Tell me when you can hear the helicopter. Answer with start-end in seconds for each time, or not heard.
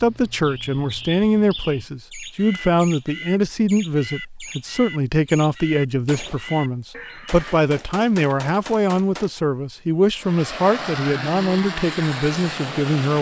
10.1-13.1.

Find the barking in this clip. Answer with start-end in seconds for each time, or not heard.
not heard.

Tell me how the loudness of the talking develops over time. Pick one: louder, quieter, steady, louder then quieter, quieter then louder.
steady.